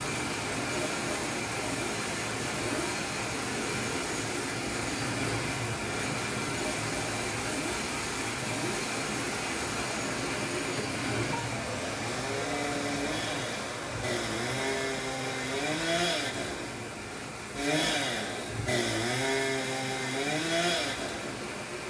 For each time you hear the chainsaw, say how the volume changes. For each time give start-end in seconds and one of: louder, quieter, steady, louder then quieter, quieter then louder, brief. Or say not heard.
0.0-21.6 louder.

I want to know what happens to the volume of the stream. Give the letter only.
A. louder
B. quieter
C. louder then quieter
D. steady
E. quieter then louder
B.